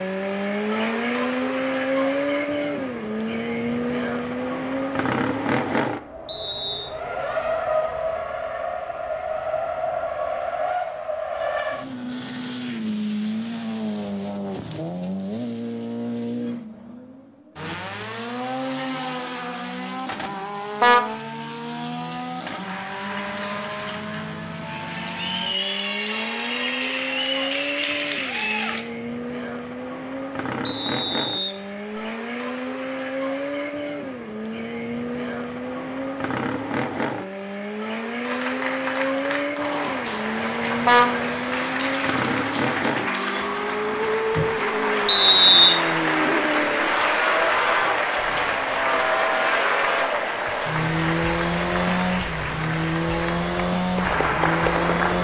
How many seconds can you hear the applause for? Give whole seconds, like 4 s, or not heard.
23 s.